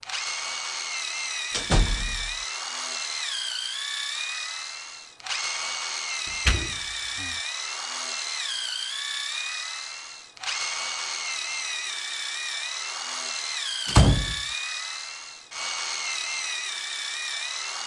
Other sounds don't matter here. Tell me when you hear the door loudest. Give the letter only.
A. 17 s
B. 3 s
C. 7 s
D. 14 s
D.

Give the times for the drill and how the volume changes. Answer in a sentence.
The drill can be heard from 0.0 to 17.8 s, at a steady volume.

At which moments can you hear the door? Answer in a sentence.
The door can be heard from 1.5 to 2.4 s, from 6.5 to 7.3 s and from 13.8 to 14.3 s.